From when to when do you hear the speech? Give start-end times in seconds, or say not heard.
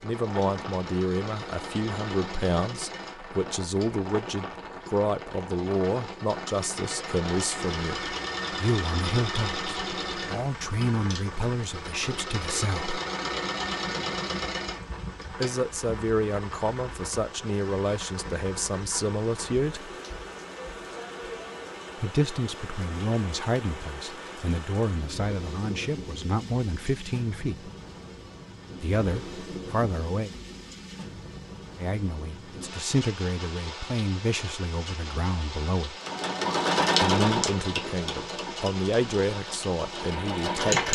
0.0-12.9, 15.4-19.9, 22.0-27.7, 28.8-30.3, 31.8-36.0, 37.0-40.9.